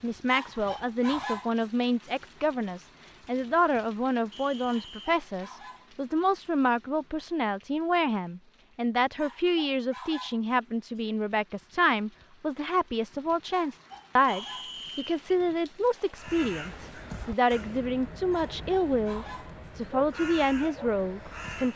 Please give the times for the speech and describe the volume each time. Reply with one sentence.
You can hear the speech from 0.0 to 21.7 s, at a steady volume.